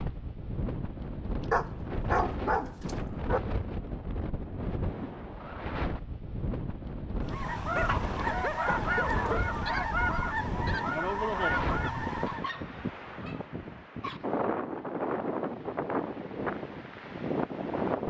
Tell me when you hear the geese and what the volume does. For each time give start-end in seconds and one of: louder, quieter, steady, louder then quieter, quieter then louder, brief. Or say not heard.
7.2-12.5 steady.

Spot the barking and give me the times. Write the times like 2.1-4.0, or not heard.
1.5-3.4, 7.8-9.5, 12.2-14.2.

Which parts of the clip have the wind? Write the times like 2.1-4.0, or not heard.
0.0-18.0.